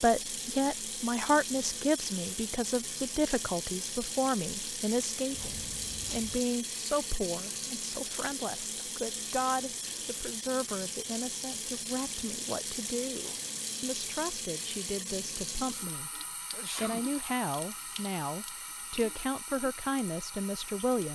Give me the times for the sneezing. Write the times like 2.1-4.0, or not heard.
5.3-6.4, 16.5-17.1.